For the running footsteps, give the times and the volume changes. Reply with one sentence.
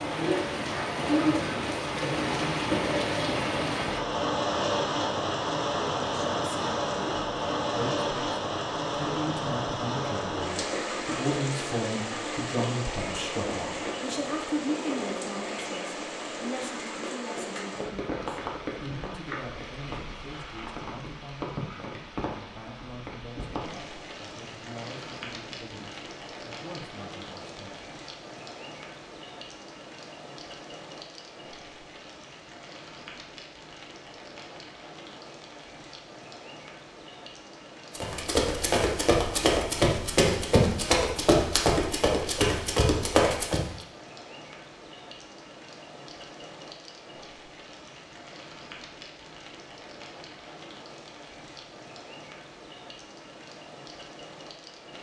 The running footsteps can be heard from 38.0 to 43.6 s, at a steady volume.